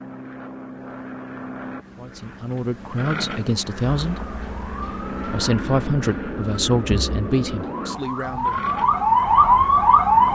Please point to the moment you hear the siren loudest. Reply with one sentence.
The loudest moment of the siren is at 10 seconds.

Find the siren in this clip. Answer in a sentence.
You can hear the siren from 4.0 to 10.2 s.